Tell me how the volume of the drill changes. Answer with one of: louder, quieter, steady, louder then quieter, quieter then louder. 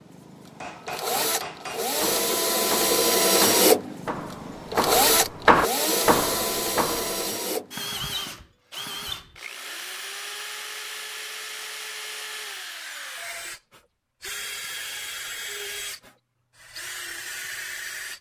quieter.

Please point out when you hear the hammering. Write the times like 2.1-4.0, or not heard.
0.6-7.3.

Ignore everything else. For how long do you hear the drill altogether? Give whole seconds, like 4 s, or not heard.
18 s.